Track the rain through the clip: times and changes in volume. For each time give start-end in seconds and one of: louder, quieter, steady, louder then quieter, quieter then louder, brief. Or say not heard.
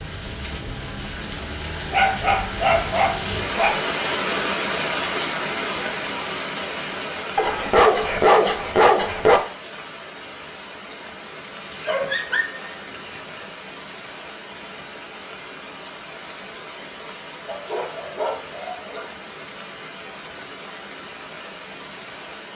0.0-22.5 quieter.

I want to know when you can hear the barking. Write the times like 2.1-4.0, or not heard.
1.9-3.8, 7.3-9.4, 11.6-13.5, 17.4-19.1.